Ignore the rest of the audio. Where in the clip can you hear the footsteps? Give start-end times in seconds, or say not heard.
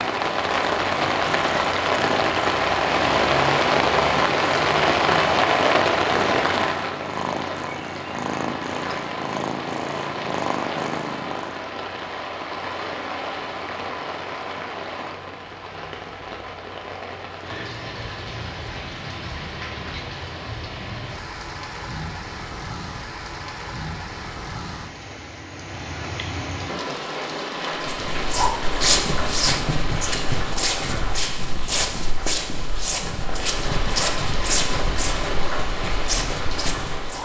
27.8-37.1.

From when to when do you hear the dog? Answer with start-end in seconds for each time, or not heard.
not heard.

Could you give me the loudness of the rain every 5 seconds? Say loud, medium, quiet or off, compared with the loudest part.
loud, loud, medium, quiet, quiet, medium, medium, medium.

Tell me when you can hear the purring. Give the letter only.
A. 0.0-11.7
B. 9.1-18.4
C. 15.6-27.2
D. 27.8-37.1
A.